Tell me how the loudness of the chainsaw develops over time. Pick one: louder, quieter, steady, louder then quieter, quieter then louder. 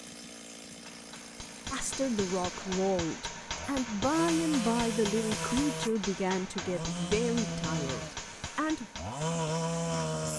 louder.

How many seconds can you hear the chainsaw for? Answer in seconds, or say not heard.
10 s.